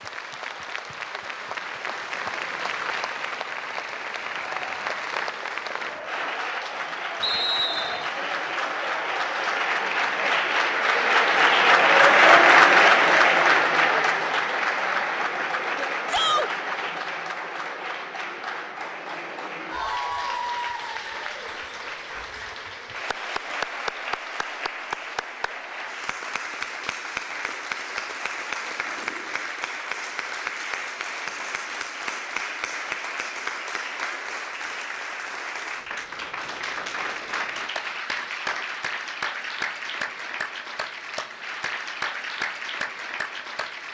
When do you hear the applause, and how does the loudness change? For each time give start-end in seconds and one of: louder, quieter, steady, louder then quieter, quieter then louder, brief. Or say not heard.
0.0-43.8 louder then quieter.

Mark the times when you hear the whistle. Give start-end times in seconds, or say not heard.
7.2-8.1.